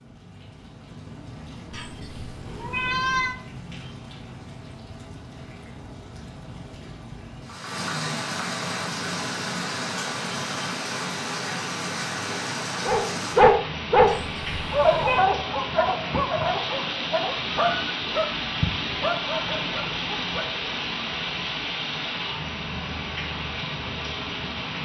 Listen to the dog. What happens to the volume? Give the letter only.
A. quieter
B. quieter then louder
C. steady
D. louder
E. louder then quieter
A.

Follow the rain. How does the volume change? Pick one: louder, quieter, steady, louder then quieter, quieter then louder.
louder.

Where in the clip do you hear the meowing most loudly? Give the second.
3 s.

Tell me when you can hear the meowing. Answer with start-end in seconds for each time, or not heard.
1.7-3.4, 14.1-15.2.